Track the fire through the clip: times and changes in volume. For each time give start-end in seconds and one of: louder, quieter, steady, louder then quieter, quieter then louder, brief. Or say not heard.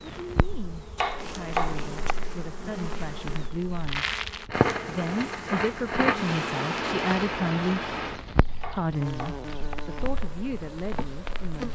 0.1-11.7 louder then quieter.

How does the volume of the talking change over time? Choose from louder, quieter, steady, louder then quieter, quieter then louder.
louder then quieter.